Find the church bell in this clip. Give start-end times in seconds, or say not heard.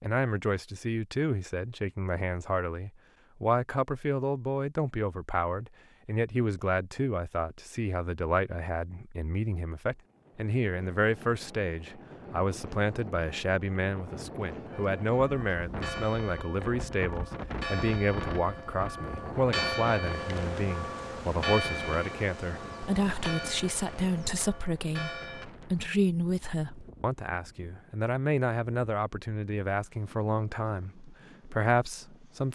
14.7-25.4.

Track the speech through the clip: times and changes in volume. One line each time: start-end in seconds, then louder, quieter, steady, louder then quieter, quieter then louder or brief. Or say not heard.
0.0-32.5 steady.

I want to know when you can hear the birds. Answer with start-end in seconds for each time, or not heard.
not heard.